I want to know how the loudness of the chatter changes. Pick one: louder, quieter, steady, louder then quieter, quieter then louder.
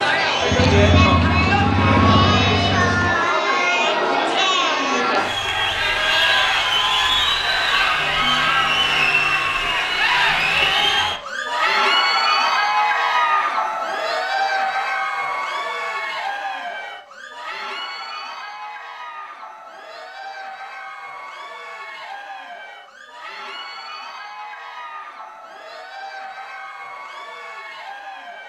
quieter.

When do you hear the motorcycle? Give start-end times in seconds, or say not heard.
0.0-3.1.